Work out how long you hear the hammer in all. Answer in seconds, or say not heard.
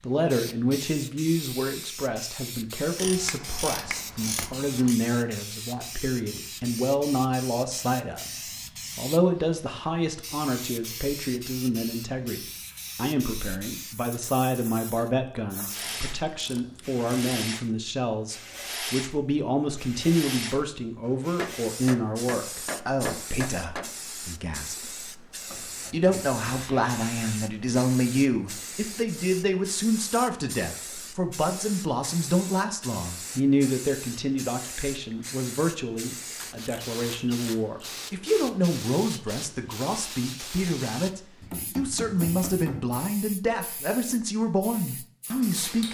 6 s.